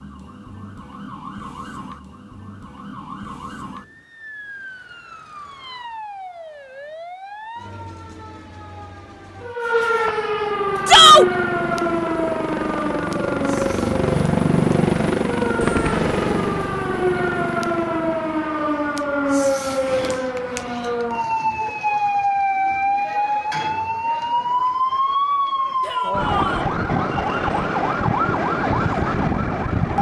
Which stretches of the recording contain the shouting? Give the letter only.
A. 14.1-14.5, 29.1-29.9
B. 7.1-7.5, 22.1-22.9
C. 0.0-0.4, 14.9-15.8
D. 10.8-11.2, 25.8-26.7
D.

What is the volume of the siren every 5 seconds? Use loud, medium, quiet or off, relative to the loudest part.
quiet, medium, loud, loud, loud, loud.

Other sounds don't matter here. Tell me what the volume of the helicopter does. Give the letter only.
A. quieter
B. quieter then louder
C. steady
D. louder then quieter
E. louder
D.